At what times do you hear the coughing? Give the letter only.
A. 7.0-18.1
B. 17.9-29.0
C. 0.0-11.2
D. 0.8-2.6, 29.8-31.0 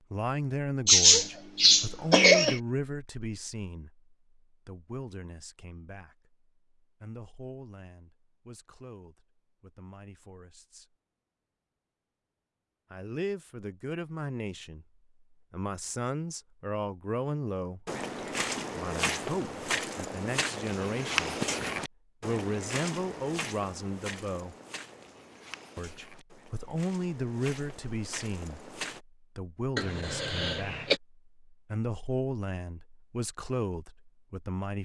D.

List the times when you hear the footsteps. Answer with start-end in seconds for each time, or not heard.
17.9-29.0.